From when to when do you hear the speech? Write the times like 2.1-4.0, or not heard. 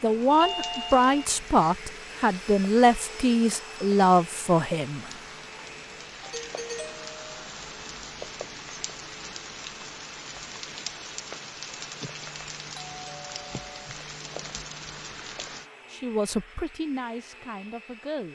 0.0-5.1, 15.9-18.3.